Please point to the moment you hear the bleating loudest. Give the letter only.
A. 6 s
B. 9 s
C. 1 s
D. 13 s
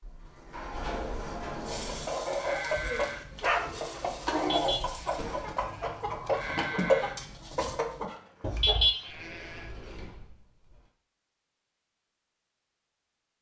B.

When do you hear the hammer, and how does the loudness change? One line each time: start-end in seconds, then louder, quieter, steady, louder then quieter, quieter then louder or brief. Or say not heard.
not heard.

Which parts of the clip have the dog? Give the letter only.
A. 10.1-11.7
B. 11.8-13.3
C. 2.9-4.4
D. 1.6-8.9
C.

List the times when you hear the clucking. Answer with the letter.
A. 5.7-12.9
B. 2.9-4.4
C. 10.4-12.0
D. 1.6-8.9
D.